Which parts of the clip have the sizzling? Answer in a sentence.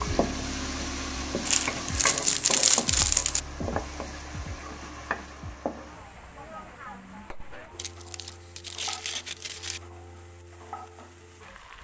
The sizzling can be heard from 0.0 to 11.7 s.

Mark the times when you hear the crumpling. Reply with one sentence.
You can hear the crumpling from 1.4 to 3.4 s and from 7.8 to 9.8 s.